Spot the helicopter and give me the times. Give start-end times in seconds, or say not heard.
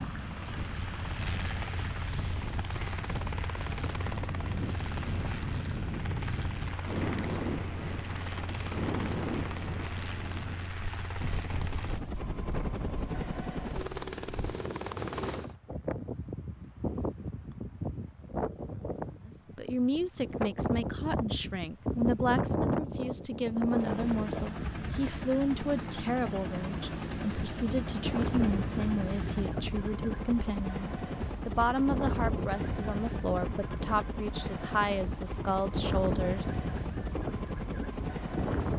0.2-15.6, 23.6-38.7.